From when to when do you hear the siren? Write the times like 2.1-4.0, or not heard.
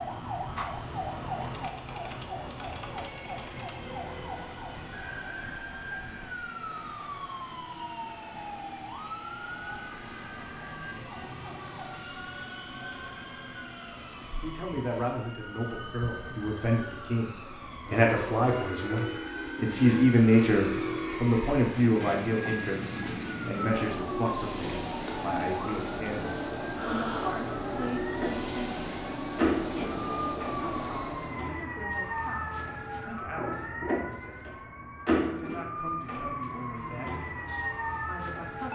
0.0-38.6.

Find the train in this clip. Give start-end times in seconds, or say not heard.
0.0-31.6.